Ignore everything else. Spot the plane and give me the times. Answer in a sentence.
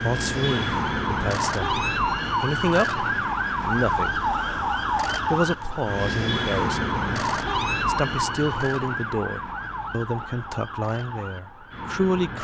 You can't hear the plane here.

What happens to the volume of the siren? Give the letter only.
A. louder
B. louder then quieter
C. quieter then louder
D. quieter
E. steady
D.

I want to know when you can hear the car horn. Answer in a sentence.
The car horn can't be heard in this clip.